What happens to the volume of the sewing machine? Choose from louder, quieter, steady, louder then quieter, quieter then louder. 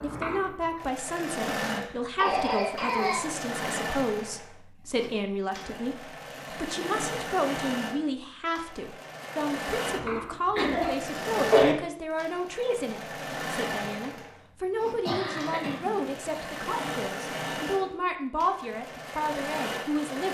steady.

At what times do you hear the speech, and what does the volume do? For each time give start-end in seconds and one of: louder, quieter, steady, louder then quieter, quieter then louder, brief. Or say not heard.
0.0-20.3 steady.